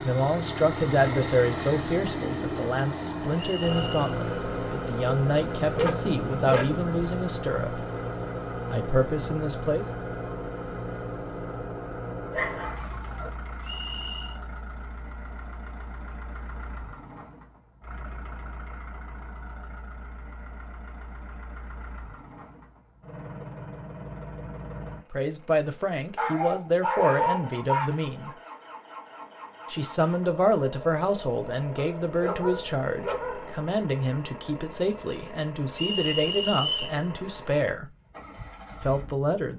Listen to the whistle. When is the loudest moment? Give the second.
37 s.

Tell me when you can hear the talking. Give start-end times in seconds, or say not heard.
0.0-7.8, 8.7-9.9, 25.1-28.4, 29.7-37.9, 38.8-39.5.